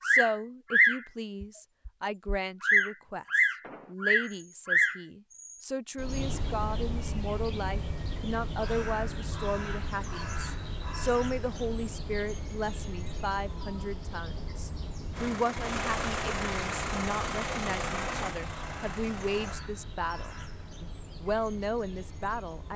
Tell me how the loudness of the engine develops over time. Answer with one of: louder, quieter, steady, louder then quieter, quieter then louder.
quieter.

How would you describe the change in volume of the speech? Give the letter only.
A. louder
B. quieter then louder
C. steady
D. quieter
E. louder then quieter
C.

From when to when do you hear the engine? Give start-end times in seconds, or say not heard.
15.1-19.6.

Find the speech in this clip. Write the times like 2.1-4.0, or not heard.
0.0-22.7.